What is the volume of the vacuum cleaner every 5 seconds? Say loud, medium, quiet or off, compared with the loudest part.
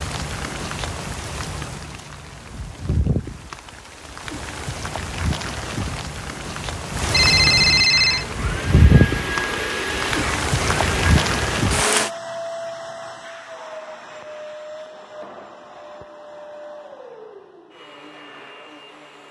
off, loud, loud, quiet.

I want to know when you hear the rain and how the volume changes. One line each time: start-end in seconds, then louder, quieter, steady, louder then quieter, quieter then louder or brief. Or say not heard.
0.0-12.1 louder.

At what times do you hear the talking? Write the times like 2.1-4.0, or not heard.
not heard.